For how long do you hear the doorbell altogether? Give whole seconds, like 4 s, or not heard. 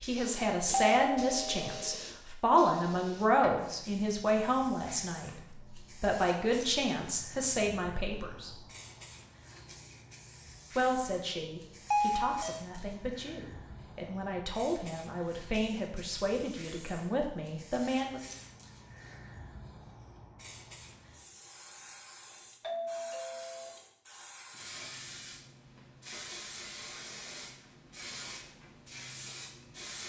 3 s.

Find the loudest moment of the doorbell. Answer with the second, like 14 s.
12 s.